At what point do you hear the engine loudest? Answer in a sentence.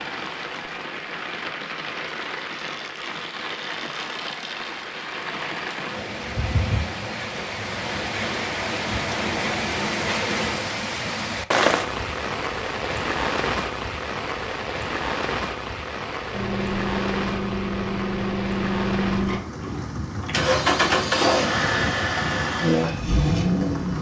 The loudest moment of the engine is at 21 seconds.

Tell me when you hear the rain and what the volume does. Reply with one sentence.
You can hear the rain from 0.0 to 23.9 s, getting louder then quieter.